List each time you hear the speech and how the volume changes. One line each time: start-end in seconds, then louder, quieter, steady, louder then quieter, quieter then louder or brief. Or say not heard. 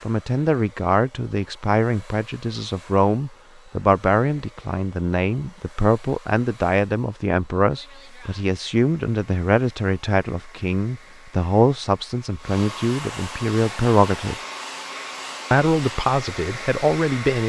0.0-14.3 steady
15.5-17.4 brief.